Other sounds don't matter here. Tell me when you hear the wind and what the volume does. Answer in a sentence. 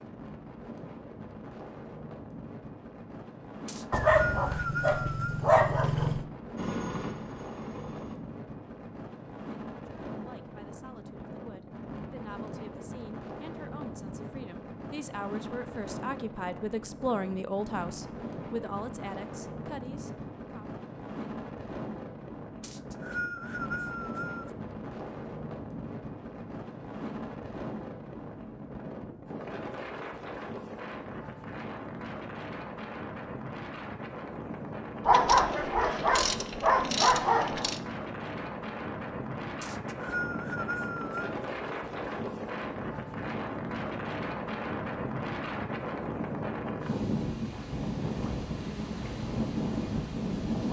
You can hear the wind from 0.0 to 50.6 s, getting louder.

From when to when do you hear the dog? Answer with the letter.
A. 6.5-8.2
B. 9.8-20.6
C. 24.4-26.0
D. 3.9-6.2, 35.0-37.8
D.